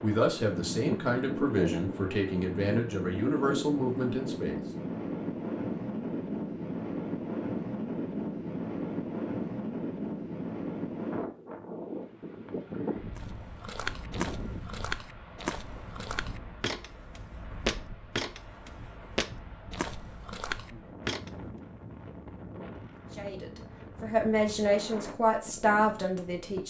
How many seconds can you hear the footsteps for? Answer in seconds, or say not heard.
8 s.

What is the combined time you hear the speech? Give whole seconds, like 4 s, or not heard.
8 s.